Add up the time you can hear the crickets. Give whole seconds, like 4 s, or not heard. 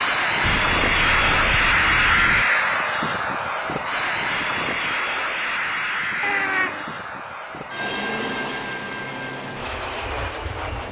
not heard.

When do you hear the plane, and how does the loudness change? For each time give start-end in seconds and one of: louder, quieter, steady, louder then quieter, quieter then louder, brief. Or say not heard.
0.0-10.8 quieter.